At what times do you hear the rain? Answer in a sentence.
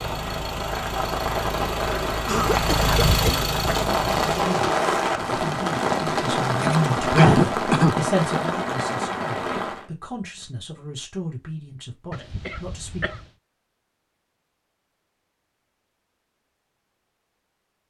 You can hear the rain from 0.0 to 9.9 s.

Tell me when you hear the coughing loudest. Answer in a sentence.
The loudest moment of the coughing is at 7 seconds.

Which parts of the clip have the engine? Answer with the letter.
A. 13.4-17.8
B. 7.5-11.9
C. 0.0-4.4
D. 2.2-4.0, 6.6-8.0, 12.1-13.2
C.